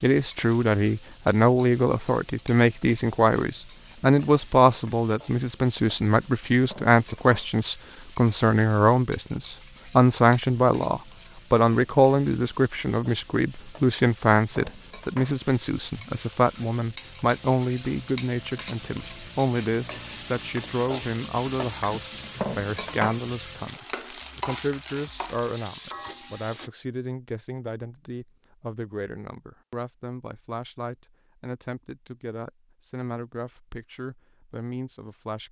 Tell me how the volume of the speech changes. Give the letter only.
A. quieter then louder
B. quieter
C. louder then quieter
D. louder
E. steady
B.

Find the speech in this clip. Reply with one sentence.
You can hear the speech from 0.0 to 35.4 s.